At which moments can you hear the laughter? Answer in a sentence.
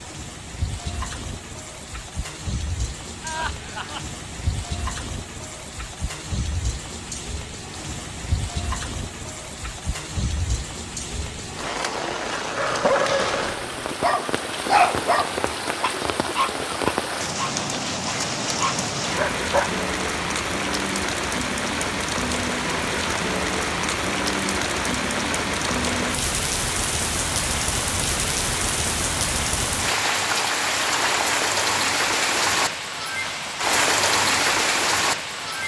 The laughter can be heard from 3.2 to 4.1 s.